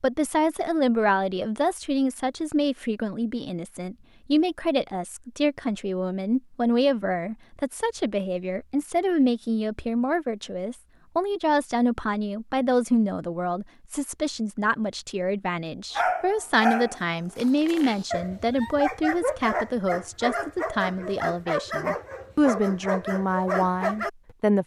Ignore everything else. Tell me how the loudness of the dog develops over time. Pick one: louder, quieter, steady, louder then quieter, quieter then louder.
steady.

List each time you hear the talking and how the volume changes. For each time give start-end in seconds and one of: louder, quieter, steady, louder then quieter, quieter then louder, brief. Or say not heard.
0.0-24.6 steady.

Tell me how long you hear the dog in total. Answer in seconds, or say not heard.
8 s.